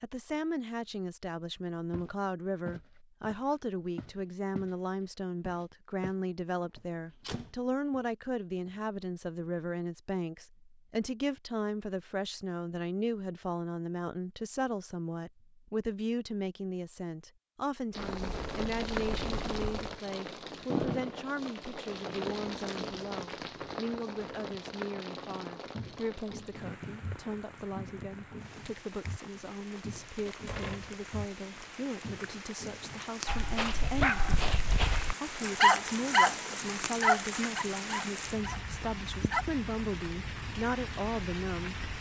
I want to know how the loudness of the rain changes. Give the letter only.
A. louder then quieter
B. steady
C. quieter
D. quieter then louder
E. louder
D.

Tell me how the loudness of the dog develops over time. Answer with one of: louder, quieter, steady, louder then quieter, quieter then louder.
louder then quieter.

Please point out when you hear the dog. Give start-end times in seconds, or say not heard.
33.2-39.5.